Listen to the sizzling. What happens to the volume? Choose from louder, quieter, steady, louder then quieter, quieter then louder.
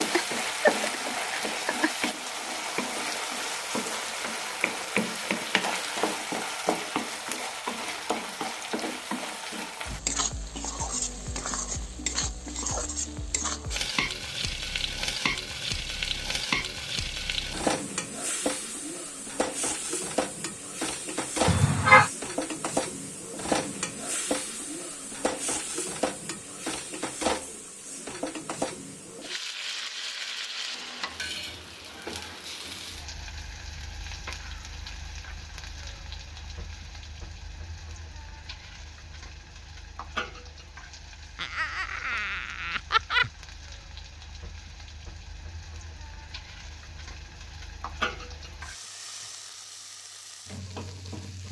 quieter.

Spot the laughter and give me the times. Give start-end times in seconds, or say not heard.
0.1-1.9, 21.4-22.1, 41.4-43.3.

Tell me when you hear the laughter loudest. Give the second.
22 s.